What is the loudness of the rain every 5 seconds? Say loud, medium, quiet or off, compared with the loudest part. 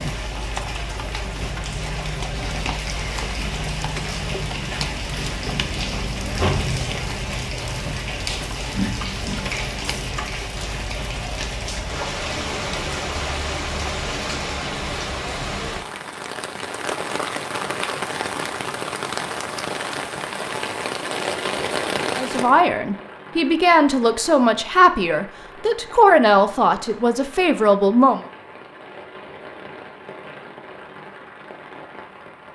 loud, loud, loud, loud, loud, quiet, quiet.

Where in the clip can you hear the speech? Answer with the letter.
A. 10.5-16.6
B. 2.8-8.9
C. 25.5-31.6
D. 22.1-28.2
D.